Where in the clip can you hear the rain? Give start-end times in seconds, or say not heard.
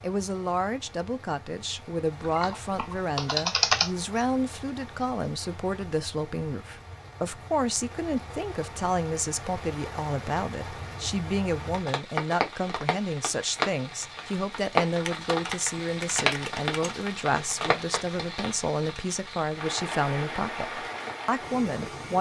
0.0-22.1.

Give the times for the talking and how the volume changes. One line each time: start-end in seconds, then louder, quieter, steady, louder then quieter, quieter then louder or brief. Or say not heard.
0.0-22.1 steady.